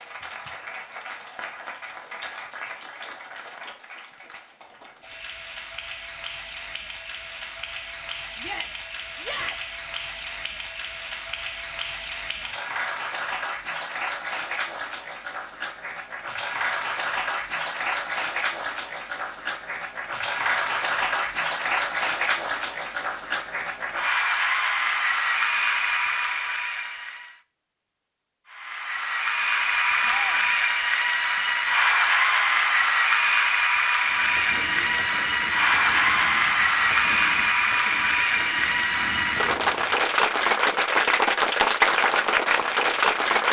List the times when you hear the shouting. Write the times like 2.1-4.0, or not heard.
8.3-9.8, 30.0-30.6.